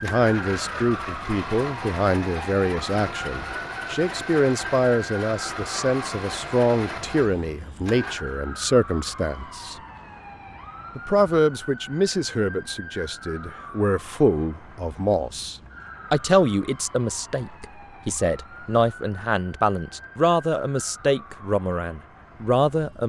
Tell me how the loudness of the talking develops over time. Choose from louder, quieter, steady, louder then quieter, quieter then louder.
steady.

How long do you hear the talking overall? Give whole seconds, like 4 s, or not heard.
22 s.